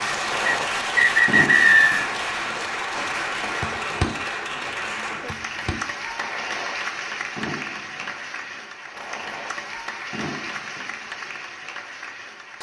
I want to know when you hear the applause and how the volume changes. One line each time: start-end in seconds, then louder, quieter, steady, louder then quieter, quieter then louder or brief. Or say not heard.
0.0-12.5 quieter.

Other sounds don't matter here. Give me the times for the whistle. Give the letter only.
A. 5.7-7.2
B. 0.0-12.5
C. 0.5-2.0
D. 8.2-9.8
C.